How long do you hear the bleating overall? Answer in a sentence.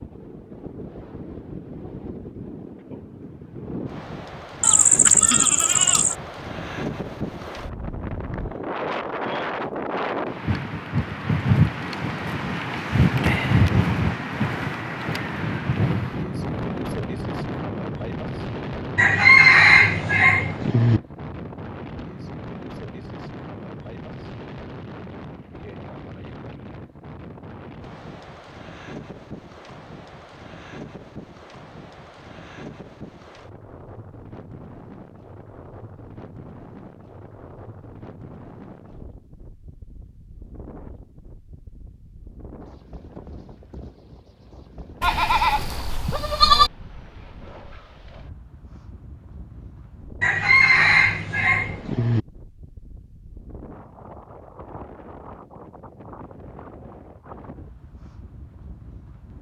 The bleating can be heard for 3 seconds in total.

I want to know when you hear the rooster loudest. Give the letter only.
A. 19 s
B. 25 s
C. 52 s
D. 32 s
A.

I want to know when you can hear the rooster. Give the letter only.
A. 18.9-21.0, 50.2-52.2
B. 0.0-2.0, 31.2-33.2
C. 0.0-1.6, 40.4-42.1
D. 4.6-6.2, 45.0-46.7
A.